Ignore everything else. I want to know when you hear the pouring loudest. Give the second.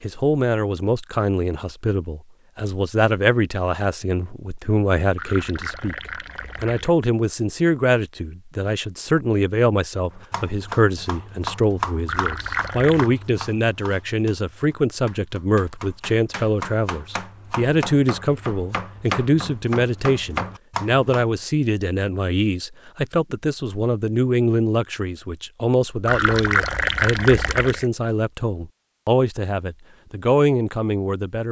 27 s.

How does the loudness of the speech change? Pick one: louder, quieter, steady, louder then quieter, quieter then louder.
steady.